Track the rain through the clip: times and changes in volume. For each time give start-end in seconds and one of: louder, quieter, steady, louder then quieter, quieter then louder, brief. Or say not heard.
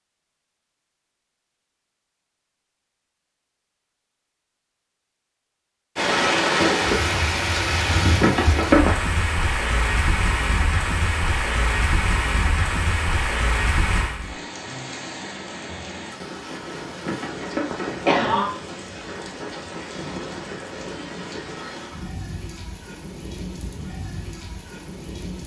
6.0-25.4 quieter.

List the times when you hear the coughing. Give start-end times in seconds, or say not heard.
8.2-8.9, 17.1-18.5.